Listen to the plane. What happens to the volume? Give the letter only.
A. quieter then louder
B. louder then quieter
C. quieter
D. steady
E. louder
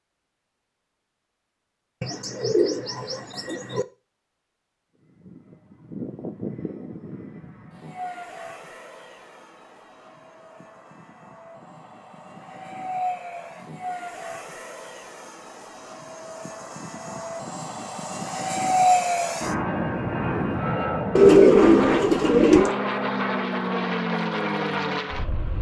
E.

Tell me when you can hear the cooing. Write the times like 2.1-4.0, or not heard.
2.0-3.9, 21.1-22.8.